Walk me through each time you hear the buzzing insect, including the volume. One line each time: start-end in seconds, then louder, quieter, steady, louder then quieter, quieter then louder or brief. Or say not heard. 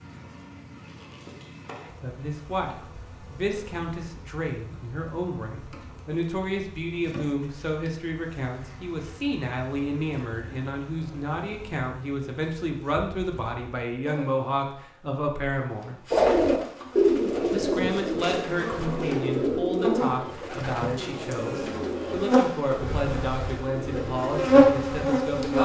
0.0-25.6 louder.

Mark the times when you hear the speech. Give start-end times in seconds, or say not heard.
2.0-16.0, 17.5-25.6.